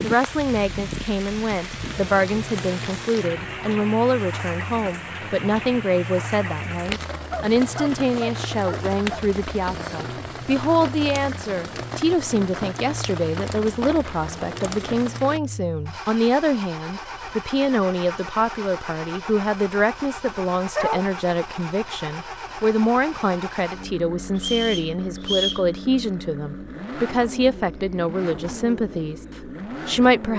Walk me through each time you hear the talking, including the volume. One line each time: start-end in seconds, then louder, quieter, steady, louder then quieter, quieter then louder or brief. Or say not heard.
0.0-30.3 steady.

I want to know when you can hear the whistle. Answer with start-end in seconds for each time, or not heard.
24.4-25.6.